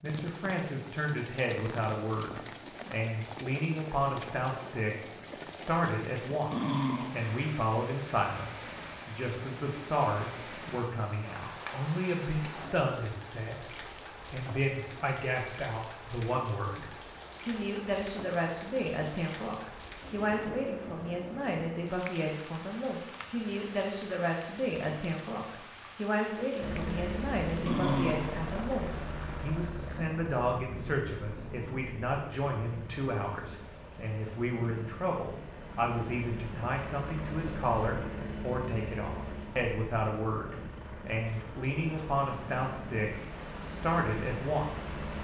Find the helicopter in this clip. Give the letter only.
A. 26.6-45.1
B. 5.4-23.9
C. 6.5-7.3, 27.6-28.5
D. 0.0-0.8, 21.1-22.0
A.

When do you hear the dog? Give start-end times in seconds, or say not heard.
6.5-7.3, 27.6-28.5.